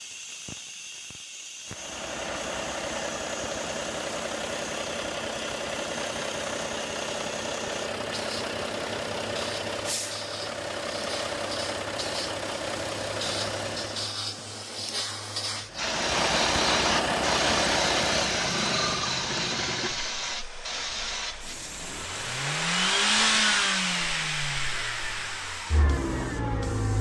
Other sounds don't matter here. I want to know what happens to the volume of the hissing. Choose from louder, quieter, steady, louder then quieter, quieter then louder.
louder then quieter.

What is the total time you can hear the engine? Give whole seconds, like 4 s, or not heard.
24 s.